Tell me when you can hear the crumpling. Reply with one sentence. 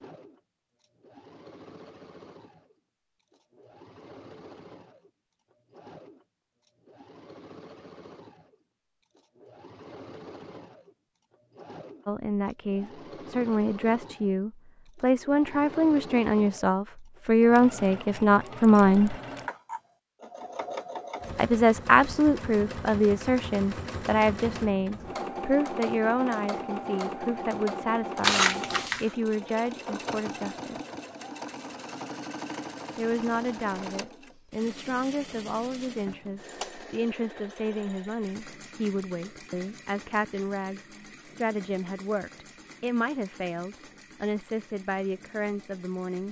You can hear the crumpling from 28.2 to 29.1 s.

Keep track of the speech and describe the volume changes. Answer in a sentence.
The volume of the speech goes down.